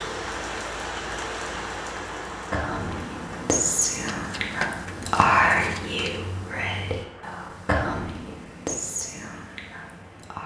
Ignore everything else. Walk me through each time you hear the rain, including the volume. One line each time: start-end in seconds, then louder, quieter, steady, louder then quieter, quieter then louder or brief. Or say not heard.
0.0-10.4 quieter.